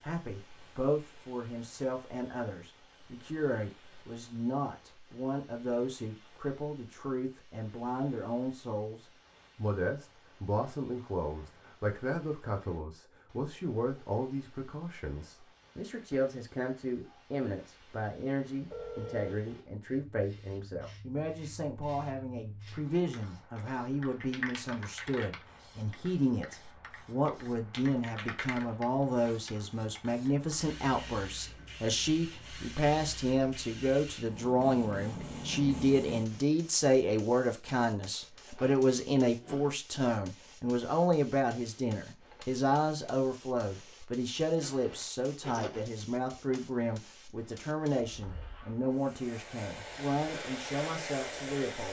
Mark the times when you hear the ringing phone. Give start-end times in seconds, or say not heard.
18.7-19.4.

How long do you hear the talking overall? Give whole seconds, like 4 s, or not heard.
52 s.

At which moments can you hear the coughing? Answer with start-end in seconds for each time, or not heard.
not heard.